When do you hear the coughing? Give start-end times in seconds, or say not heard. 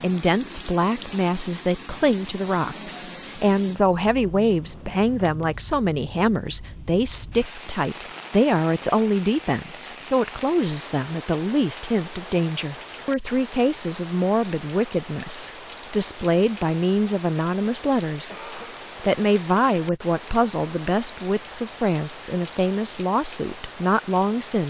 18.2-18.9.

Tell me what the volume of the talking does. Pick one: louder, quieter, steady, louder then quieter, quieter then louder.
steady.